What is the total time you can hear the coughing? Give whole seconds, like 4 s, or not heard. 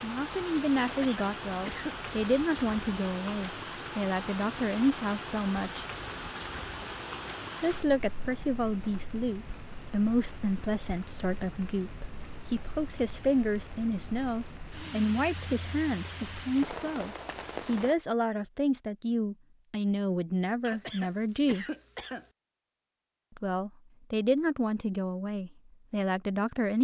3 s.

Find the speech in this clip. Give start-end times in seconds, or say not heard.
0.0-5.8, 7.6-21.6, 23.4-26.7.